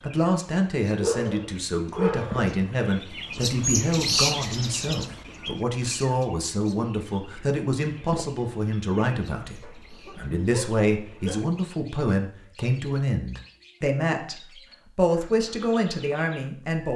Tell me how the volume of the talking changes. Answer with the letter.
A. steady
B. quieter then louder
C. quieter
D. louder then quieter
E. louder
A.